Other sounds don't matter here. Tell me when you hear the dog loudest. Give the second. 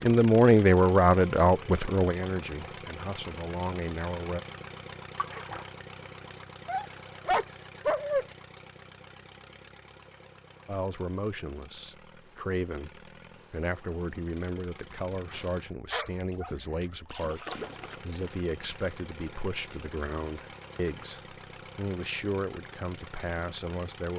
8 s.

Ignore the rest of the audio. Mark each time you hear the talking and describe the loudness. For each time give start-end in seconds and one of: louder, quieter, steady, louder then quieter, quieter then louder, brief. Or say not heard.
0.0-4.4 quieter then louder
10.7-24.1 steady.